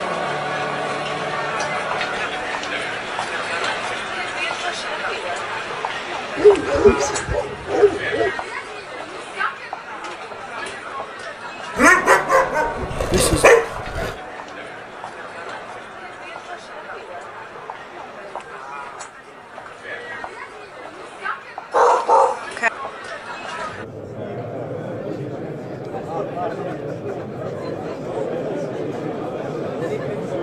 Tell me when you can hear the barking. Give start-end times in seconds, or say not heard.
6.3-8.3, 11.8-14.2, 21.7-22.7.